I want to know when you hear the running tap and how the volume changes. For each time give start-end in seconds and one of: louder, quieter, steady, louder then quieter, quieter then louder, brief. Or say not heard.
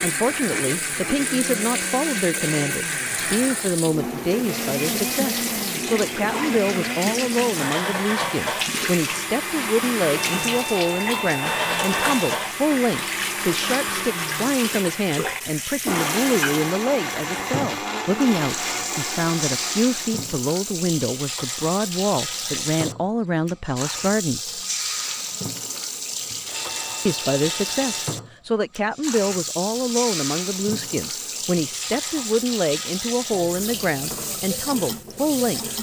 0.0-35.7 steady.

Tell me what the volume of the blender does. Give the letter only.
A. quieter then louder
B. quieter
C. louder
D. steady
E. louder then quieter
D.